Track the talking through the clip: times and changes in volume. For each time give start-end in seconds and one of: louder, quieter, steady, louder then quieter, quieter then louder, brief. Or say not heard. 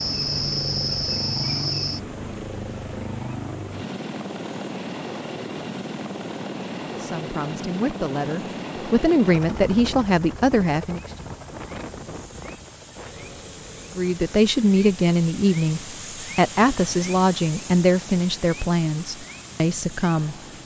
7.0-11.0 louder
13.9-20.4 quieter.